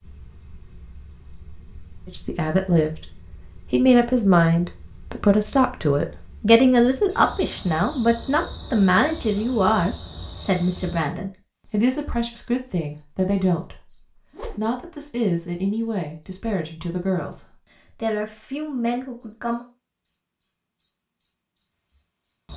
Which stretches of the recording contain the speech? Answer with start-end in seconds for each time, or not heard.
2.0-3.1, 3.7-13.9, 14.6-19.6.